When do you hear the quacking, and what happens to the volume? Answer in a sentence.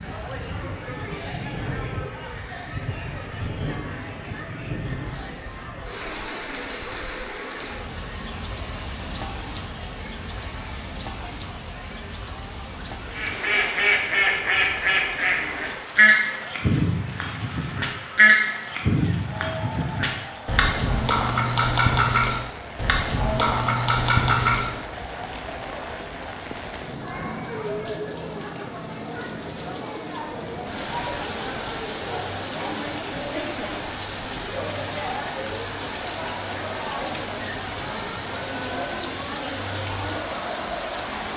You can hear the quacking from 13.1 to 24.7 s, at a steady volume.